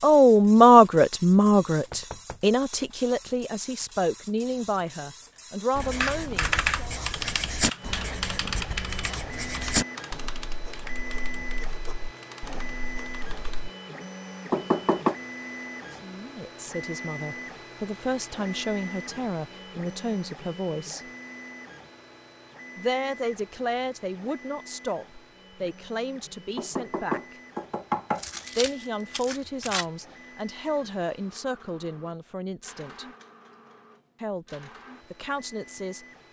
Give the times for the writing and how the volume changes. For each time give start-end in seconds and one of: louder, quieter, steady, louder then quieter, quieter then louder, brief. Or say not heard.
5.7-13.7 louder then quieter.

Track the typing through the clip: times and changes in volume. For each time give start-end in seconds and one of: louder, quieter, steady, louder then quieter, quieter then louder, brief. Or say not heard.
5.8-13.7 quieter.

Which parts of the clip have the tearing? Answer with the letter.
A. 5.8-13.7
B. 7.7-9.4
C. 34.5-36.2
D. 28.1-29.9
D.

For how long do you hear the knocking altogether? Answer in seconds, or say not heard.
3 s.